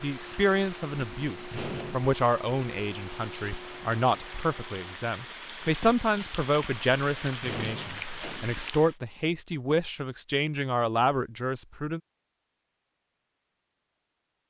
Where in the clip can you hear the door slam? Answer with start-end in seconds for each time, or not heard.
1.5-2.1, 7.4-8.6.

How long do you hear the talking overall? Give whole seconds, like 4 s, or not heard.
12 s.